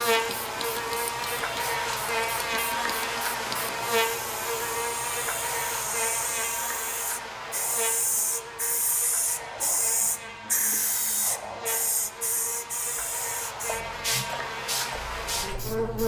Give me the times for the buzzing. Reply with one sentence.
The buzzing can be heard from 0.0 to 16.0 s.